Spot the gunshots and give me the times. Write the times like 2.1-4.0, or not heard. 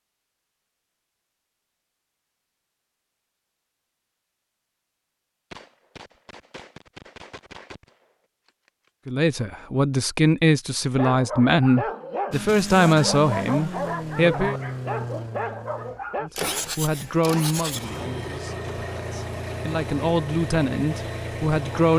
5.5-9.1.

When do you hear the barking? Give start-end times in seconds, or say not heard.
10.9-16.3.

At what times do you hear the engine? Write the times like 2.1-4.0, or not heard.
12.3-21.9.